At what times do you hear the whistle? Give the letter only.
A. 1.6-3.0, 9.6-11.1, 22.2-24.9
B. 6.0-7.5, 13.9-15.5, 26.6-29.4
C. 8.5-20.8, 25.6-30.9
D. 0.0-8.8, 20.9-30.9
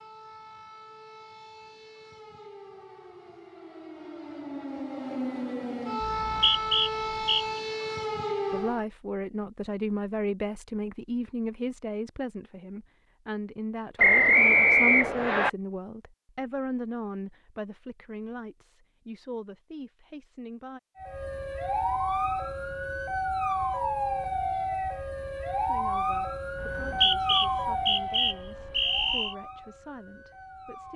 B.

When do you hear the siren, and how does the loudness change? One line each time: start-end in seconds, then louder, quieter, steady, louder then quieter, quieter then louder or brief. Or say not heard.
0.0-8.8 louder
20.9-30.9 quieter.